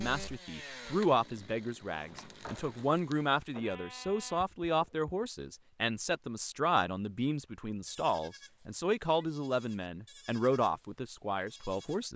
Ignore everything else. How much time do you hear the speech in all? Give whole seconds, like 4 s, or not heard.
12 s.